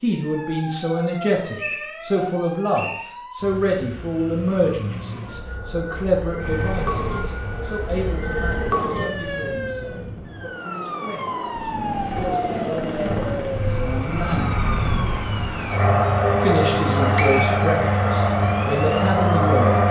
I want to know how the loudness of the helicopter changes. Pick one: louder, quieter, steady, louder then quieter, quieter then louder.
louder.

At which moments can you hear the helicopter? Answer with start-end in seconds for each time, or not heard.
6.3-19.8.